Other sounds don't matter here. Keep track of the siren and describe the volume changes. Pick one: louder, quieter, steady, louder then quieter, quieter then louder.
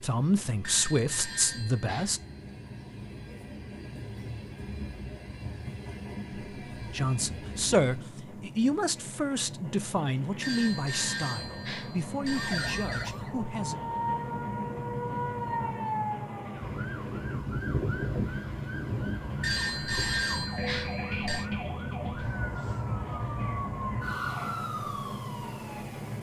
steady.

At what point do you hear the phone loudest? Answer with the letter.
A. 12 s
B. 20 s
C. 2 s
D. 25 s
B.